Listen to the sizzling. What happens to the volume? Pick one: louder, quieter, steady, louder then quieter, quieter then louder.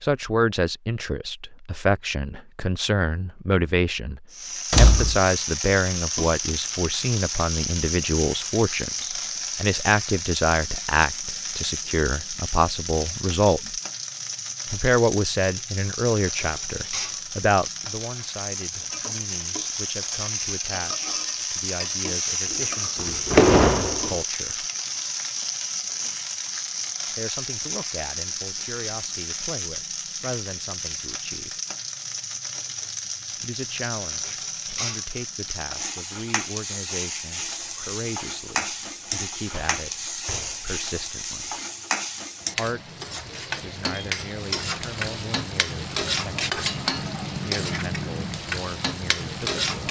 steady.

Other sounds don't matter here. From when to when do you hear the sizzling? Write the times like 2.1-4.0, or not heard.
4.3-49.8.